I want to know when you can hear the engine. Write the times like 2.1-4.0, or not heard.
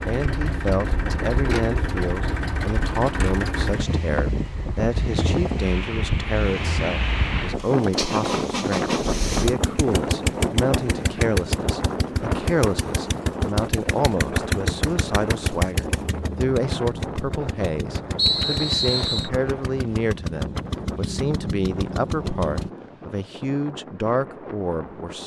0.0-22.7.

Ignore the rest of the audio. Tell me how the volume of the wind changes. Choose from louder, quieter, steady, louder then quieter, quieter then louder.
quieter.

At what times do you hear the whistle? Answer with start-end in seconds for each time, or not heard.
18.1-19.3.